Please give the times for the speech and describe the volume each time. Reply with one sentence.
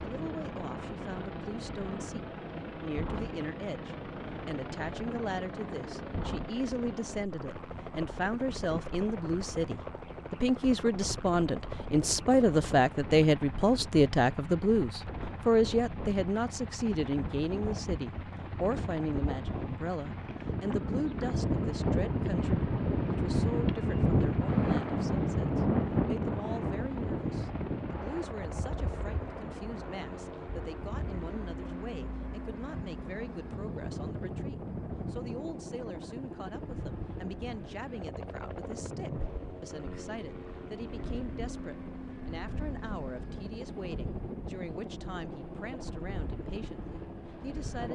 The speech can be heard from 0.0 to 47.9 s, getting louder then quieter.